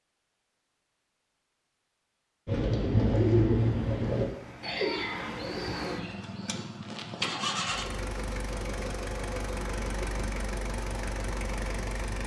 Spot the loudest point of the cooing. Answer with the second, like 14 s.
3 s.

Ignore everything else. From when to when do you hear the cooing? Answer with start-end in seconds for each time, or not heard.
2.5-6.7.